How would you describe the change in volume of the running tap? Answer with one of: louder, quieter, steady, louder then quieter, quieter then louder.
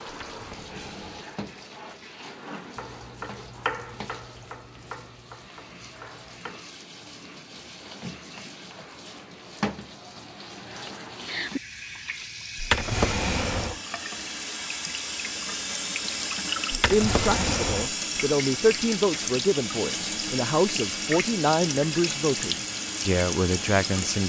louder.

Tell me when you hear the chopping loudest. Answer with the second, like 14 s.
4 s.